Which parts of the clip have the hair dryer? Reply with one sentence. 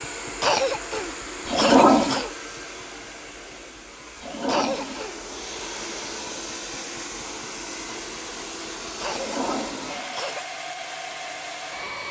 You can hear the hair dryer from 0.0 to 12.0 s.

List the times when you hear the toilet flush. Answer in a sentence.
You can hear the toilet flush from 1.4 to 2.2 s, from 4.2 to 5.0 s and from 9.1 to 10.3 s.